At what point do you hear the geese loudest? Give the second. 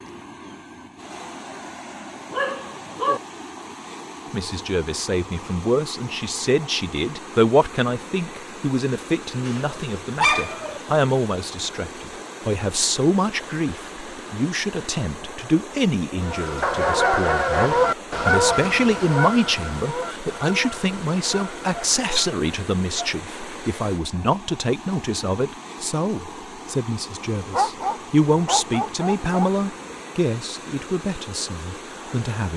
18 s.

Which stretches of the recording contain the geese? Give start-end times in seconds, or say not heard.
16.1-22.4.